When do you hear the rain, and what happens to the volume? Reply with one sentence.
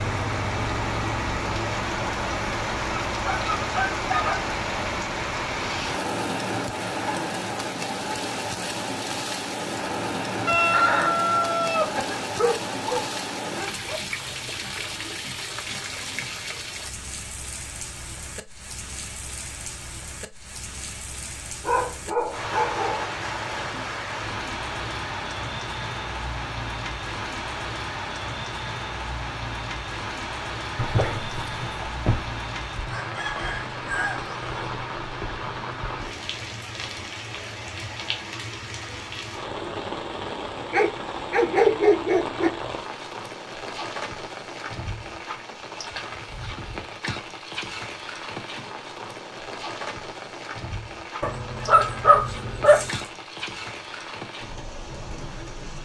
You can hear the rain from 0.0 to 55.8 s, getting quieter.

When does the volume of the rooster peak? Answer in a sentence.
The loudest moment of the rooster is at 11 seconds.